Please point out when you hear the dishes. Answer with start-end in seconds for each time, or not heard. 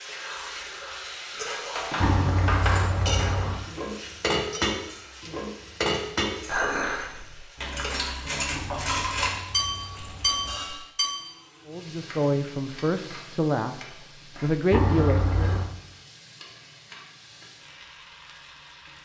1.4-11.2.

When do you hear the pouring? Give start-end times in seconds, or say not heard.
2.0-3.6, 8.5-10.6, 14.7-15.7.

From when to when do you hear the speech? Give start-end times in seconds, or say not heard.
11.7-15.6.